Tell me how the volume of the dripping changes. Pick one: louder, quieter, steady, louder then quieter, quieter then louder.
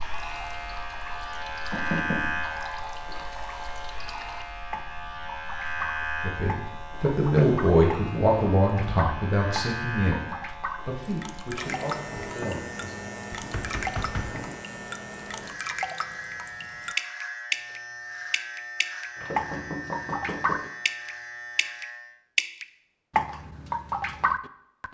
louder.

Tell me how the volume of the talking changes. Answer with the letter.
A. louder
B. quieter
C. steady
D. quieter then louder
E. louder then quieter
B.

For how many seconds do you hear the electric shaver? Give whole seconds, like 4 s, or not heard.
22 s.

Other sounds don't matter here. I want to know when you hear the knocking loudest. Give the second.
2 s.